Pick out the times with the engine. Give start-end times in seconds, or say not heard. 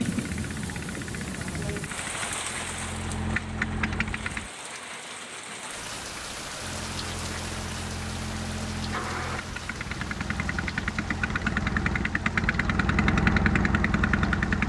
0.0-4.5, 6.6-14.6.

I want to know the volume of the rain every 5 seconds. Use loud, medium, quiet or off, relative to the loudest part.
loud, loud, medium.